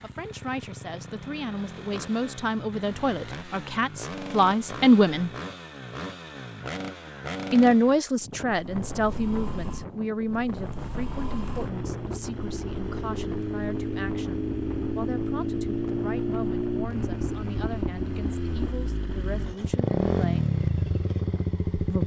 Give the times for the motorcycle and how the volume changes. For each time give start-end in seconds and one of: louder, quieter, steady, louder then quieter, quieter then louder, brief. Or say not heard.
0.0-22.0 louder.